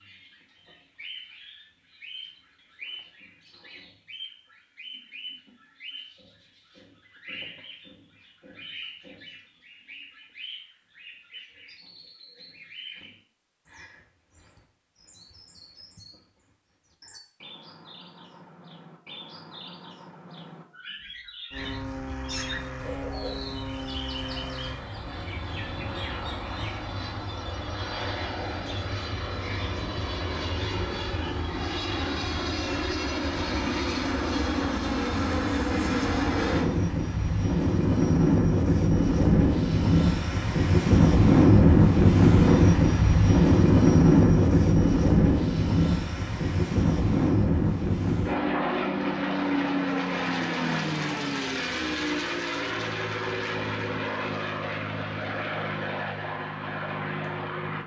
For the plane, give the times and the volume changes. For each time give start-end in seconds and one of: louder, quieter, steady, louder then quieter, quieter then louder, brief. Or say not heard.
21.5-57.8 louder then quieter.